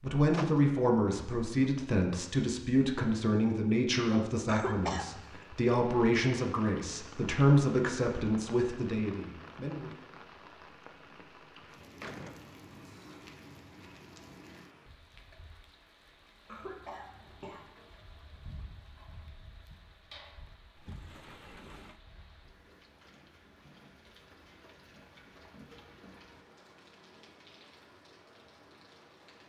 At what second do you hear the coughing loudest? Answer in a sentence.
The loudest moment of the coughing is at 5 seconds.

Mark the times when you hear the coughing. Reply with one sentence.
You can hear the coughing from 4.5 to 5.5 s and from 16.4 to 17.7 s.